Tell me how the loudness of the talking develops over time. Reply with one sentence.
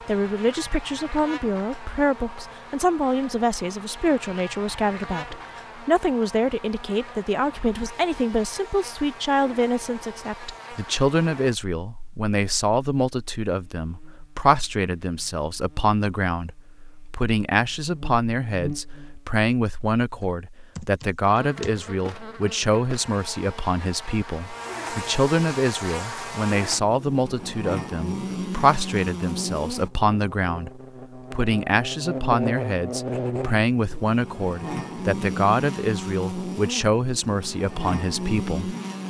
The volume of the talking stays about the same.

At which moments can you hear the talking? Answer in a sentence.
The talking can be heard from 0.0 to 38.8 s.